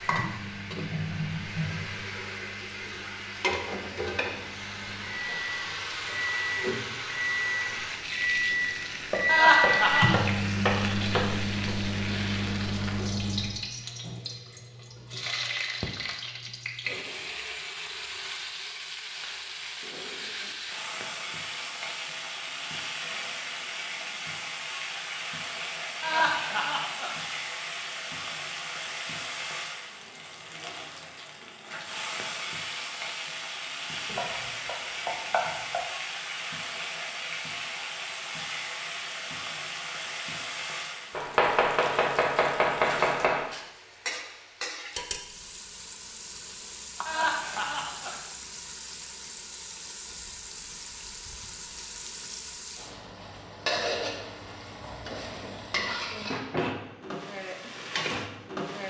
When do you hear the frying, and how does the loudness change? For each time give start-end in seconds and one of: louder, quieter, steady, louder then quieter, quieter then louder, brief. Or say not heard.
0.0-58.8 steady.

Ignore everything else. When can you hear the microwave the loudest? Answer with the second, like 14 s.
10 s.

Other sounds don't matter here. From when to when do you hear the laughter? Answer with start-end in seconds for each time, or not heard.
9.2-10.2, 26.0-27.1, 47.0-48.2.